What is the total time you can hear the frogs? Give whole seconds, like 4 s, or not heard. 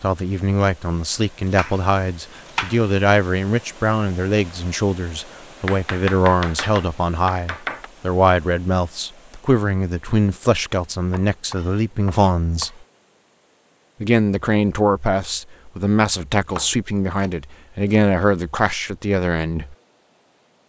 not heard.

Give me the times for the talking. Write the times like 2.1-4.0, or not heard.
0.0-12.7, 14.0-19.8.